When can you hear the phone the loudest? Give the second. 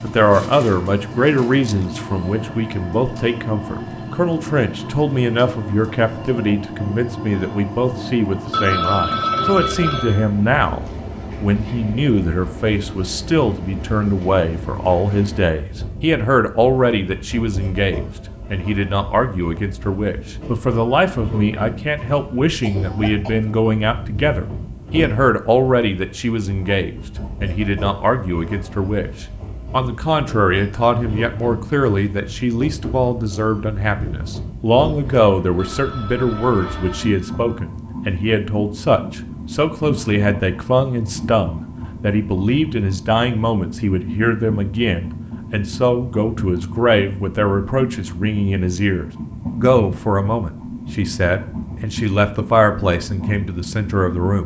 9 s.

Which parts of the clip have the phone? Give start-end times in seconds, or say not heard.
8.5-10.3, 35.5-37.6.